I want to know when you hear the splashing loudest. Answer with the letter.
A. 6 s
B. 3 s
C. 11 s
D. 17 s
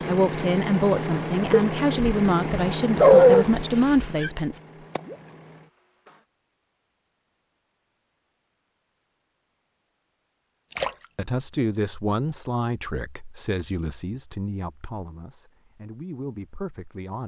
C.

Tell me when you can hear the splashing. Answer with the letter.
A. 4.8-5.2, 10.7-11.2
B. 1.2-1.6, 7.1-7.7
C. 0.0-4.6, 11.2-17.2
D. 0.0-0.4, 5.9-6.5
A.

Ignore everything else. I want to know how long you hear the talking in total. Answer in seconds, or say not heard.
11 s.